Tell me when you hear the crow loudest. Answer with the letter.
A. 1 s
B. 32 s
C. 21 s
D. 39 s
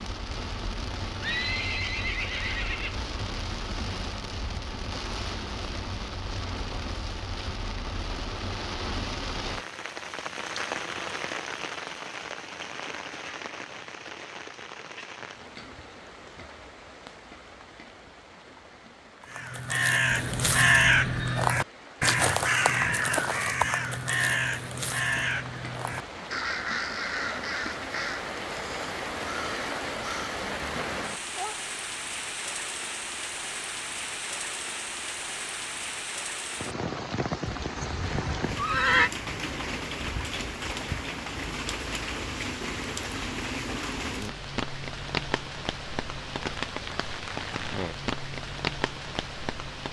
C.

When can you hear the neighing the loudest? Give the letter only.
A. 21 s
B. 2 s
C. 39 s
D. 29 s
C.